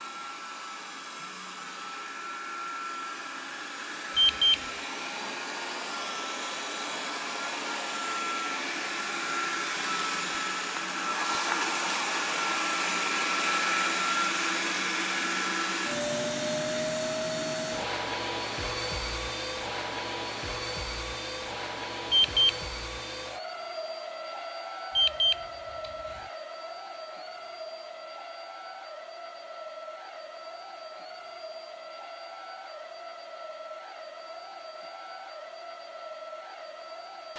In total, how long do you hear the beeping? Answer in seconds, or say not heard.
2 s.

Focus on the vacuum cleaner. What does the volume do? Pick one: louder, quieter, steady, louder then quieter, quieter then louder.
louder then quieter.